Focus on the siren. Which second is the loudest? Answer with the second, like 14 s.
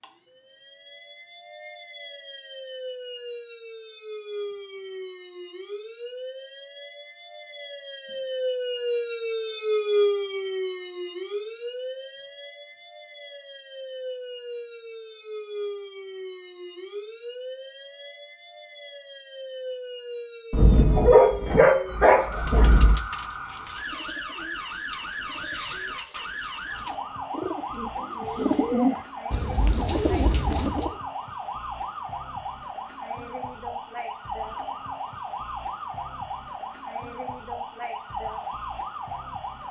10 s.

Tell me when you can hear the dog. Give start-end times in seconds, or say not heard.
20.5-23.0.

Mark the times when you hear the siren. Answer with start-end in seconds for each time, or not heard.
0.0-39.6.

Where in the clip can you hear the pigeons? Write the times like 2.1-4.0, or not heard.
22.1-30.9.